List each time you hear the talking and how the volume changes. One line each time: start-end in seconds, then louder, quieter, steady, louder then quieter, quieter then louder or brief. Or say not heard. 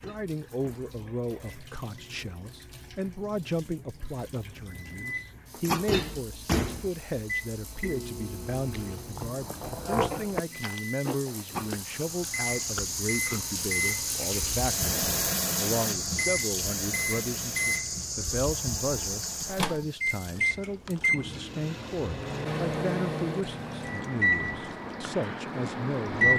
0.1-26.3 steady.